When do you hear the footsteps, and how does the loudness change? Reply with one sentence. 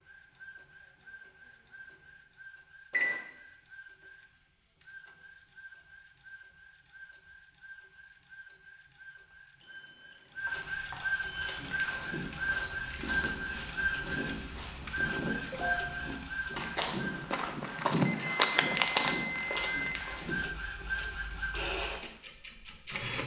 The footsteps can be heard from 11.4 to 20.4 s, getting louder.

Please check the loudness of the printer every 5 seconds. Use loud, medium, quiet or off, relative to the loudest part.
quiet, quiet, loud, loud, loud.